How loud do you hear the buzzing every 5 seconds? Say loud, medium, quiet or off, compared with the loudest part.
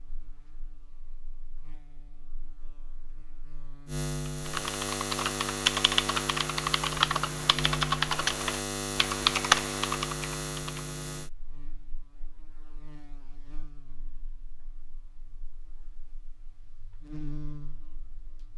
medium, loud, medium, quiet.